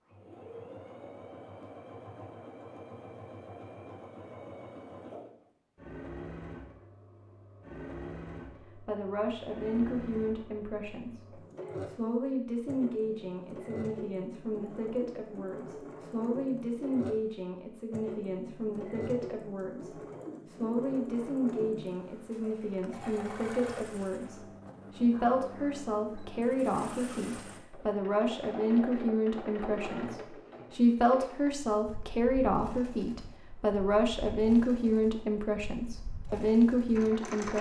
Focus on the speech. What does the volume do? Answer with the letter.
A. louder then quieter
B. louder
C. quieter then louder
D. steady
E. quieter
B.